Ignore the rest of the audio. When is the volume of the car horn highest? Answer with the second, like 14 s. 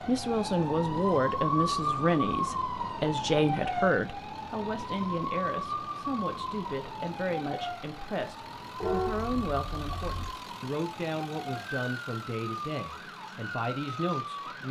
9 s.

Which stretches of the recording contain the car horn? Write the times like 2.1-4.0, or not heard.
8.8-10.3.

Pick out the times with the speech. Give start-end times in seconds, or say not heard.
0.1-14.6.